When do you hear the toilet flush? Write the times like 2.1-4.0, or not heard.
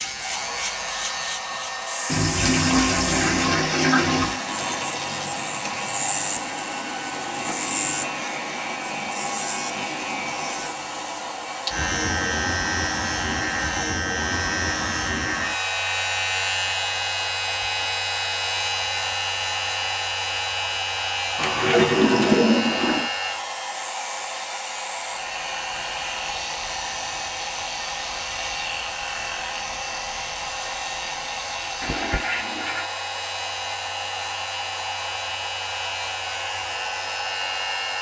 2.1-4.4, 21.4-23.1, 31.8-32.9.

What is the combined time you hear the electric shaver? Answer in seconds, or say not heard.
38 s.